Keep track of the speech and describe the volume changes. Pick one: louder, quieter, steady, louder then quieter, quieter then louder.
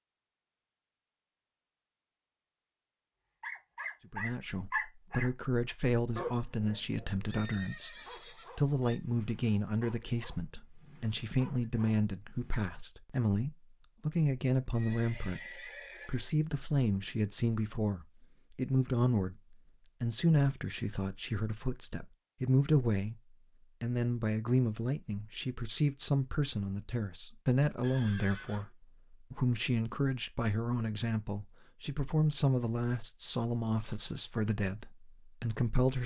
steady.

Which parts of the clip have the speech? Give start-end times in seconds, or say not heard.
4.1-8.0, 8.6-36.0.